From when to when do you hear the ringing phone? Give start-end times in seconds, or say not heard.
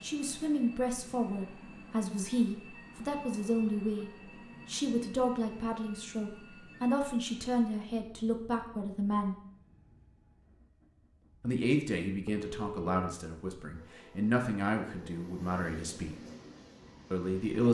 12.2-13.2.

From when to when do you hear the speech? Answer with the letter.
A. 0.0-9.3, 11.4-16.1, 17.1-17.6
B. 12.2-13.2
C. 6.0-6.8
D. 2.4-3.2
A.